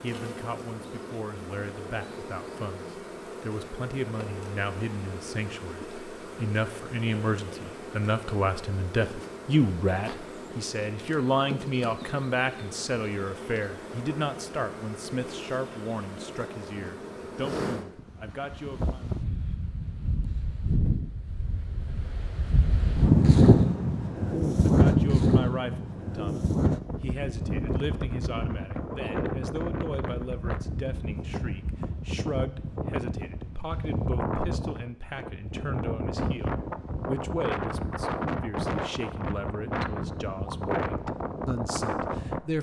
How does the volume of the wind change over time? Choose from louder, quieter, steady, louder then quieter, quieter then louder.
louder then quieter.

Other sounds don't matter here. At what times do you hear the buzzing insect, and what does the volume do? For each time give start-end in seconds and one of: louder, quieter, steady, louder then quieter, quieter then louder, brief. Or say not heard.
0.0-17.9 steady.